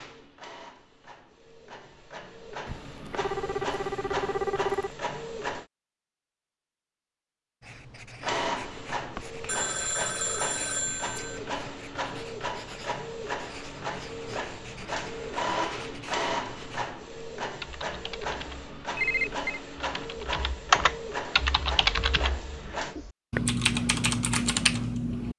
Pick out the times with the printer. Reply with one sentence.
The printer can be heard from 0.0 to 5.7 s and from 8.2 to 22.9 s.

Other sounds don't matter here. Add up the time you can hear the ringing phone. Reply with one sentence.
The ringing phone can be heard for 5 seconds in total.